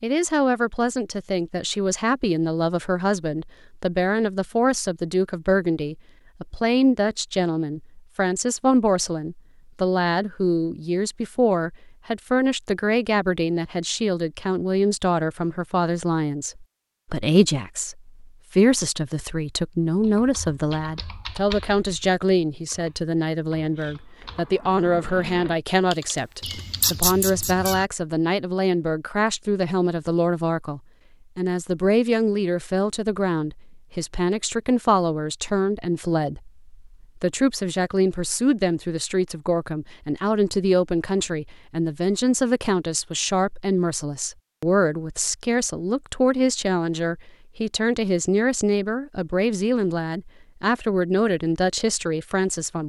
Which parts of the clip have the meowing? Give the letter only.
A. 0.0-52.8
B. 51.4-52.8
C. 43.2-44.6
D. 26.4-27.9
D.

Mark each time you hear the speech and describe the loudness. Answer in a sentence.
The speech can be heard from 0.0 to 52.8 s, at a steady volume.